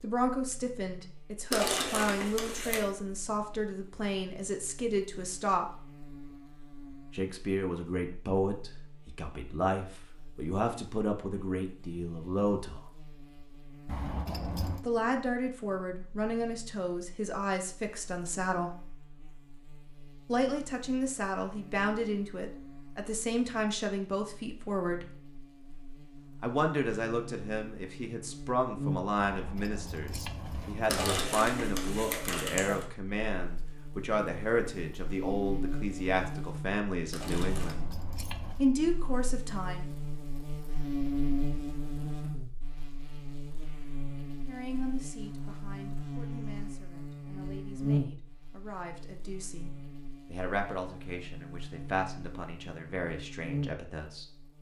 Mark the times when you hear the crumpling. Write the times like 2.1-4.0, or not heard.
1.5-2.9, 30.9-32.9, 37.1-37.9.